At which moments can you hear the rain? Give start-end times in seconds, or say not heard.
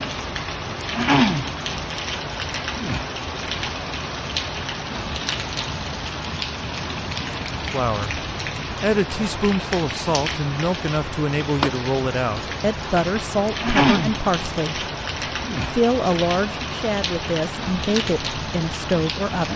0.0-19.5.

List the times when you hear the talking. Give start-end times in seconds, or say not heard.
7.7-14.9, 15.7-19.5.